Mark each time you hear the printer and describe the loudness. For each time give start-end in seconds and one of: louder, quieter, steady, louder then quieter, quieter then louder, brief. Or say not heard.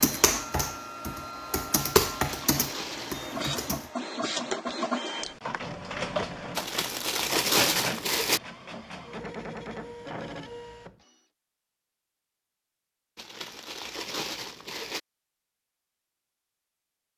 0.0-11.2 louder then quieter.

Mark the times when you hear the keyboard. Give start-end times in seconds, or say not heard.
0.0-3.9.